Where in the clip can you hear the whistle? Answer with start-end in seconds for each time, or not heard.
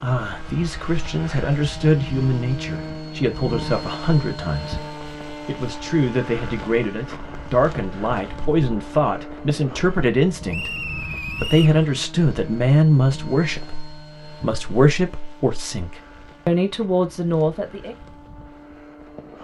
10.5-11.8.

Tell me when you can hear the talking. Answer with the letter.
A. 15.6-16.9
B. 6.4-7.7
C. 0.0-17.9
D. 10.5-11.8
C.